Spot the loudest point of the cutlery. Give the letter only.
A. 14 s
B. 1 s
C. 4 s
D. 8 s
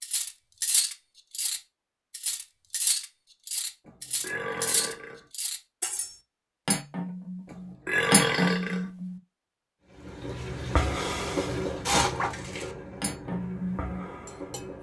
D.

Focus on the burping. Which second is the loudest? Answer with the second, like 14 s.
8 s.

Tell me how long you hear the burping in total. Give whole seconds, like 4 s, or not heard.
3 s.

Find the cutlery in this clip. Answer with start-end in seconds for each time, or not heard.
0.0-9.1, 12.2-14.7.